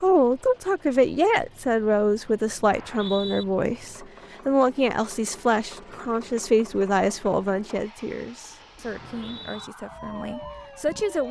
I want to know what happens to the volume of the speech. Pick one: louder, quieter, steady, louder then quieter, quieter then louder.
quieter.